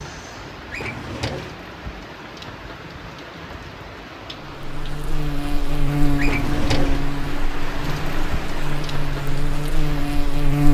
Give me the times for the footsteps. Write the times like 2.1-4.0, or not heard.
not heard.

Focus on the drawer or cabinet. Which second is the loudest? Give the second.
7 s.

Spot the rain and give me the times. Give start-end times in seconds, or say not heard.
0.0-10.6.